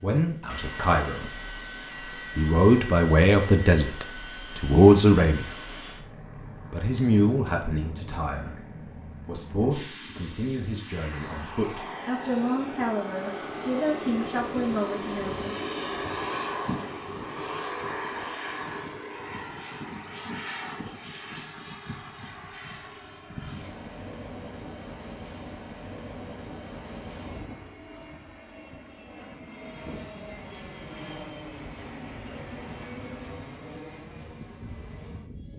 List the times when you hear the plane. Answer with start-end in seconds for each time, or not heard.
0.0-35.5.